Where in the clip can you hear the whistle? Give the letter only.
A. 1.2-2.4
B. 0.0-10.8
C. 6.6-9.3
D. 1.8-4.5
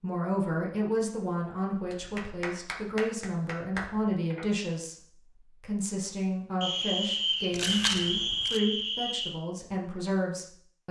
C.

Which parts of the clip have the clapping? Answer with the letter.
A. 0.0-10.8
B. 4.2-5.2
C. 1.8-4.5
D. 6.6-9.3
C.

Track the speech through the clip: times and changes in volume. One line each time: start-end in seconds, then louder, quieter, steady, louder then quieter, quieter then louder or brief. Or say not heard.
0.0-10.8 steady.